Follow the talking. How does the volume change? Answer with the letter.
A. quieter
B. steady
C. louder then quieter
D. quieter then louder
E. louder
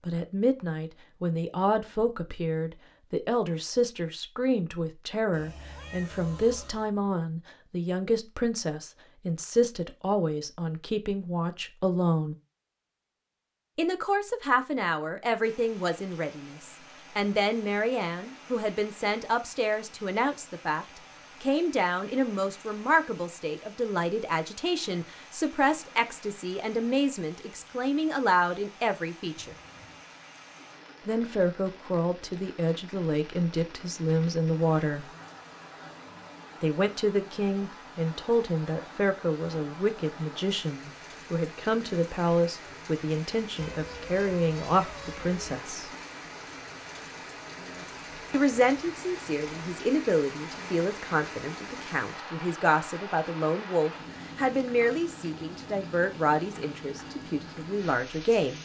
B.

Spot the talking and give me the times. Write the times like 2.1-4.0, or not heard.
0.1-12.3, 13.8-29.6, 31.1-35.1, 36.6-45.9, 48.3-58.5.